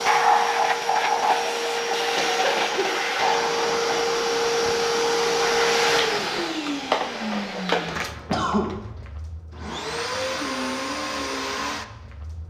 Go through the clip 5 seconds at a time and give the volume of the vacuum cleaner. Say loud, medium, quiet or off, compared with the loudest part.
loud, loud, medium.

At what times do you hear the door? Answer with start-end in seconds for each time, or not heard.
not heard.